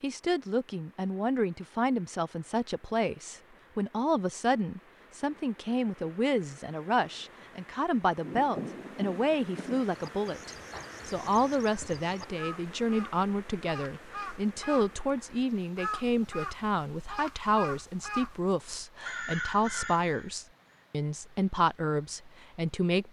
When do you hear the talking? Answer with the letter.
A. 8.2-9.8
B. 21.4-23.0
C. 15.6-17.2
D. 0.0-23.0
D.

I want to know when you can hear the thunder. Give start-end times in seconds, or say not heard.
8.2-9.8.